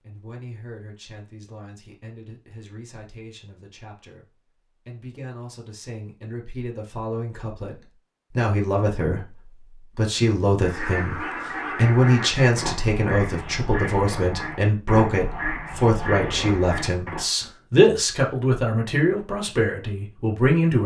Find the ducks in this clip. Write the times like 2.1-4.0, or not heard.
10.6-17.2.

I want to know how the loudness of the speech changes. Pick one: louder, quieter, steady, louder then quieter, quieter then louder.
louder.